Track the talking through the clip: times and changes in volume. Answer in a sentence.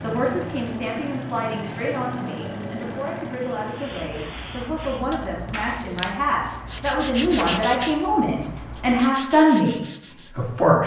The talking can be heard from 0.0 to 10.8 s, getting louder.